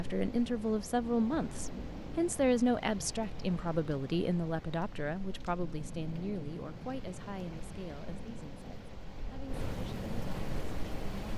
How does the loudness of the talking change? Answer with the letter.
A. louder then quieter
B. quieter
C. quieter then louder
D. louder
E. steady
B.